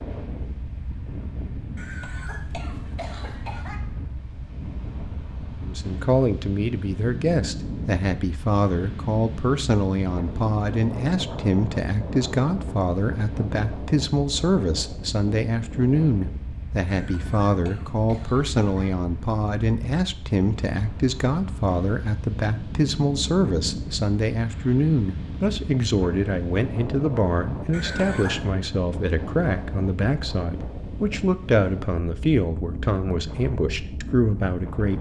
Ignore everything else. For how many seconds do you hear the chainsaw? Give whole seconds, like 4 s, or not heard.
not heard.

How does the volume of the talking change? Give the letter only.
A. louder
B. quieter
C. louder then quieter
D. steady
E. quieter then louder
D.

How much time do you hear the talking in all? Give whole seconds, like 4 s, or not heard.
29 s.